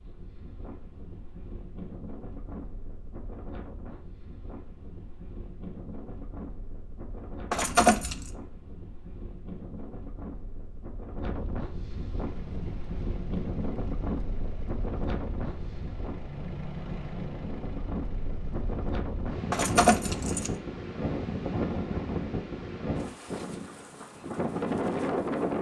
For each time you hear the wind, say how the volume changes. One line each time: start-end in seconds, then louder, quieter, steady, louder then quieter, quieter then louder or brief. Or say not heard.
0.0-25.5 louder.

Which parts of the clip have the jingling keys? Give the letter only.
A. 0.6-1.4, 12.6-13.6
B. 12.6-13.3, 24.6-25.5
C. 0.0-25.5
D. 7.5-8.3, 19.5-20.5
D.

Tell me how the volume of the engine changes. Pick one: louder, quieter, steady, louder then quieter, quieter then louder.
louder then quieter.